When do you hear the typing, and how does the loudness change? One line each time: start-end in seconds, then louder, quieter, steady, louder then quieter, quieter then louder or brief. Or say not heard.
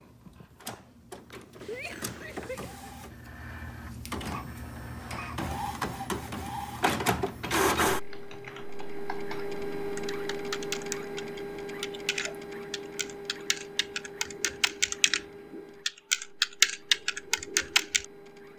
7.9-18.1 louder.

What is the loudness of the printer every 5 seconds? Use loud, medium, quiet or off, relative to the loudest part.
medium, loud, medium, quiet.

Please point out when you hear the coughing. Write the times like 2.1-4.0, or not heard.
1.6-2.9.